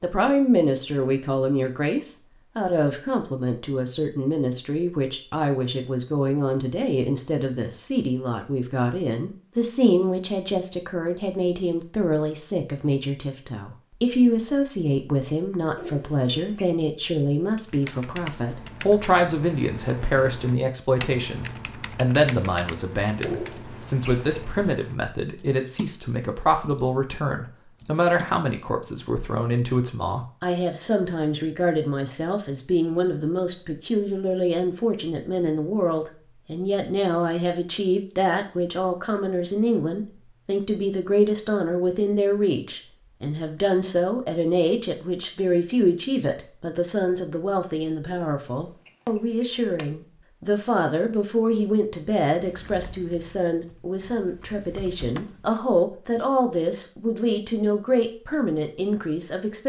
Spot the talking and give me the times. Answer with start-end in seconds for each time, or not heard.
0.0-59.6.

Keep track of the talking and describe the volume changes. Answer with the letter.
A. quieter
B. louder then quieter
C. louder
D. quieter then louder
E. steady
E.